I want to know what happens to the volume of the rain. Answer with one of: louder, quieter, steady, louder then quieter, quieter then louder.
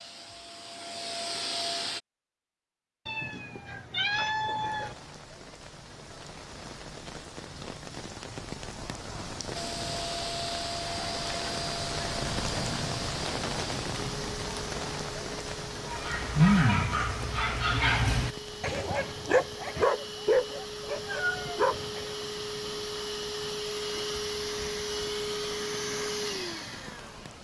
louder then quieter.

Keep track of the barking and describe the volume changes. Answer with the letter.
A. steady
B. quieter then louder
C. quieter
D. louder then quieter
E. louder
C.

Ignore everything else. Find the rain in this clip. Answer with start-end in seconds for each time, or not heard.
4.7-27.3.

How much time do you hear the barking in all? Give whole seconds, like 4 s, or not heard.
6 s.